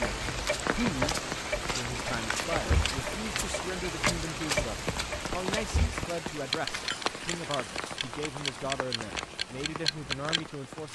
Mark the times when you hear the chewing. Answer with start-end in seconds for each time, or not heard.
not heard.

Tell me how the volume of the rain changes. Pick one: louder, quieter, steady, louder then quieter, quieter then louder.
quieter.